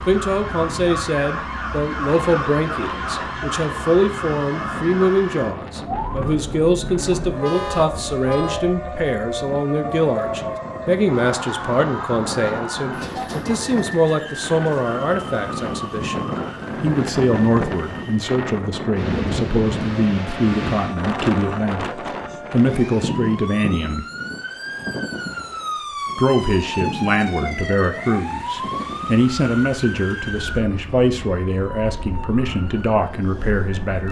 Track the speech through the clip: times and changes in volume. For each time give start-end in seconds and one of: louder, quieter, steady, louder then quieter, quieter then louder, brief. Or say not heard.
0.1-24.1 steady
26.1-34.0 steady.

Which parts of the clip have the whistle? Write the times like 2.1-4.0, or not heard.
not heard.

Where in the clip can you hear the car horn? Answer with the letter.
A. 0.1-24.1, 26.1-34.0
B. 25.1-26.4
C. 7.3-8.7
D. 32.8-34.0
C.